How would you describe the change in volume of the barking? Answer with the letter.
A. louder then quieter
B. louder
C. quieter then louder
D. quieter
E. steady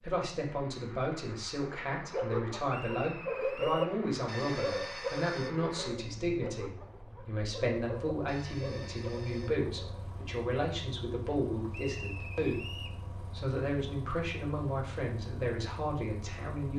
D.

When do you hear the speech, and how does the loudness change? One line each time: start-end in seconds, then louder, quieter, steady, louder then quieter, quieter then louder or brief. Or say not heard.
0.0-16.7 steady.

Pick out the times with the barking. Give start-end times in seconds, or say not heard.
1.9-10.1.